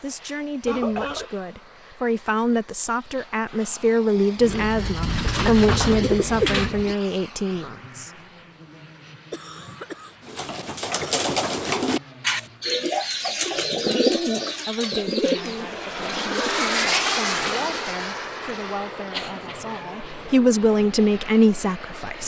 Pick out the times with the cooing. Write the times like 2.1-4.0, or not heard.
4.4-7.0, 10.2-17.9.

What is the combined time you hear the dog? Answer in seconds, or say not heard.
not heard.